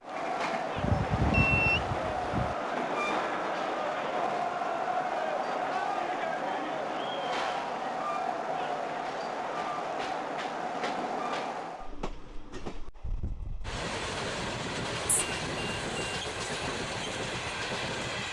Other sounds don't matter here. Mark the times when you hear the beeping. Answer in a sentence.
You can hear the beeping from 0.8 to 2.5 s and from 15.1 to 16.2 s.